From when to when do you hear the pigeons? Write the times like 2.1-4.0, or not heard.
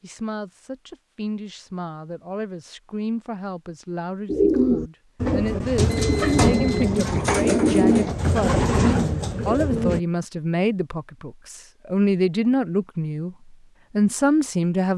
4.2-10.0.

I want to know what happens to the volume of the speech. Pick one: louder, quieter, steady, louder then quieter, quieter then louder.
louder.